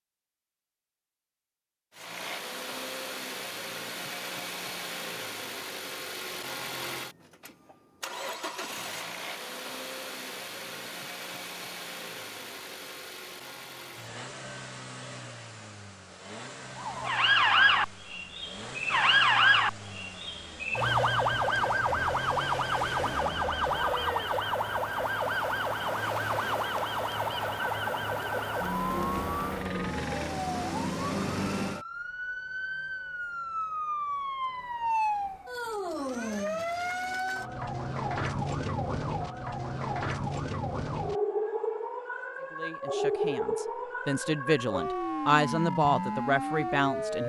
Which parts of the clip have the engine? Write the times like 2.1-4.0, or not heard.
1.9-30.4.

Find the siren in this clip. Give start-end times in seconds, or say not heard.
16.8-47.2.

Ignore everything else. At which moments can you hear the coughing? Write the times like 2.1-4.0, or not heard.
not heard.